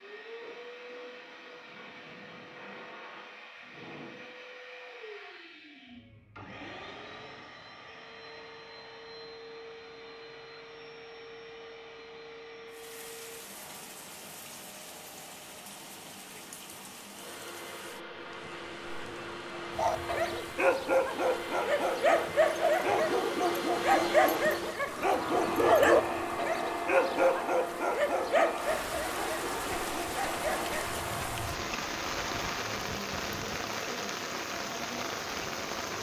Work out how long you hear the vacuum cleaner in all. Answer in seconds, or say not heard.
36 s.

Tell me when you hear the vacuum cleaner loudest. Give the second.
26 s.